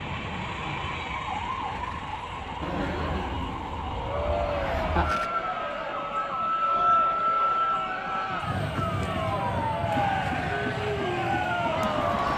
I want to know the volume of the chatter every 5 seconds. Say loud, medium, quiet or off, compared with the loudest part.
loud, medium, loud.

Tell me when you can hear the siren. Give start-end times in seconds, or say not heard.
0.0-12.3.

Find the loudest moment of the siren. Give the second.
7 s.